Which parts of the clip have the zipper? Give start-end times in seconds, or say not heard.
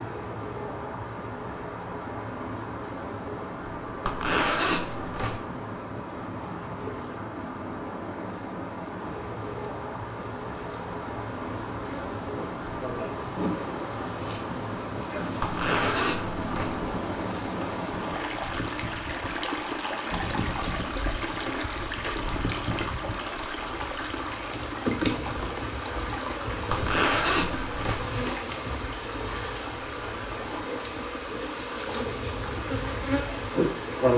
4.0-5.4, 15.4-16.8, 26.7-28.1.